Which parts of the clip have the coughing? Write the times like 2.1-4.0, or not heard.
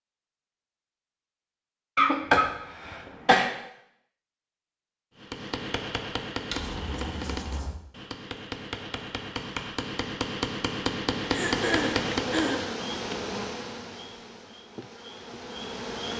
1.9-3.5, 6.5-7.8, 11.2-12.7.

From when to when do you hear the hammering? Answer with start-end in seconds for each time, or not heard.
5.2-12.5.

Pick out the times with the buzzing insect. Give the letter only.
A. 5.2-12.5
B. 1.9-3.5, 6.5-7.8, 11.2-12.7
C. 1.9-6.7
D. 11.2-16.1
D.